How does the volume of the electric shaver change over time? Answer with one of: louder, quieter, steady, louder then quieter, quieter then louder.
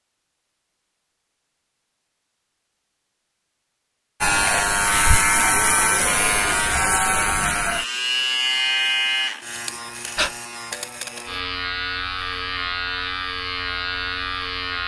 quieter.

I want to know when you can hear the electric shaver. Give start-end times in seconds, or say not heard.
4.2-14.8.